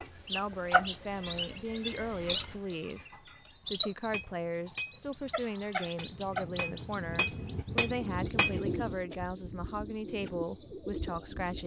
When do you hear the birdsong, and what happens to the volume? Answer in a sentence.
You can hear the birdsong from 0.0 to 11.6 s, getting quieter.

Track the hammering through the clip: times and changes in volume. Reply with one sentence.
The hammering can be heard from 4.0 to 8.9 s, getting quieter then louder.